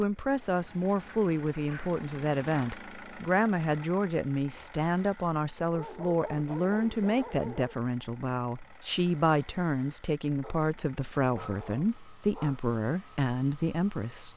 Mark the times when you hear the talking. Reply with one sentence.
The talking can be heard from 0.0 to 14.3 s.